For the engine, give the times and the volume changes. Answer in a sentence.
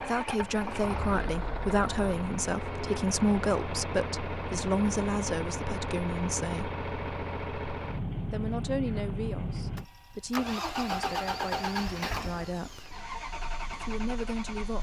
The engine can be heard from 0.0 to 14.7 s, at a steady volume.